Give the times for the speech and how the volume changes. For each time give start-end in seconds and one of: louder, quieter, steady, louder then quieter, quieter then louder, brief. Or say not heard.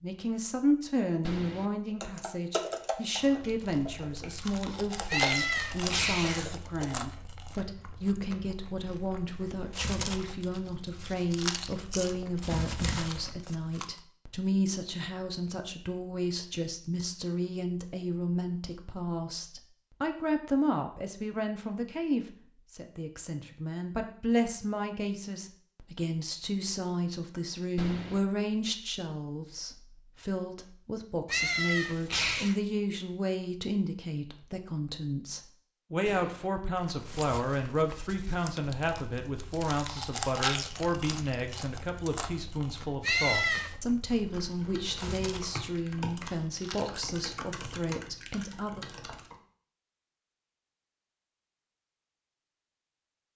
0.0-48.9 steady.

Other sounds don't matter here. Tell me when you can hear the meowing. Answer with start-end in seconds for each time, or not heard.
5.0-6.6, 31.2-32.5, 43.0-43.8.